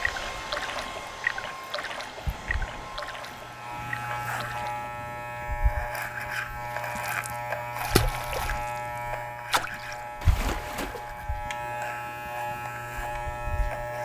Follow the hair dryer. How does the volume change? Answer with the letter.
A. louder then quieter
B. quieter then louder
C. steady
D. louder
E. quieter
E.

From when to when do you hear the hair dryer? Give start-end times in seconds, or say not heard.
0.0-4.2.